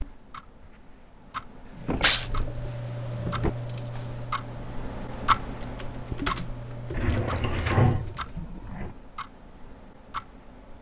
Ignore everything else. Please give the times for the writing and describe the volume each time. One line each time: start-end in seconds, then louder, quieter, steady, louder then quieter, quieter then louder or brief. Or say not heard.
not heard.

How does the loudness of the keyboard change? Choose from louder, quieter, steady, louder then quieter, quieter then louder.
quieter then louder.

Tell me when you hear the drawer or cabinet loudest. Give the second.
8 s.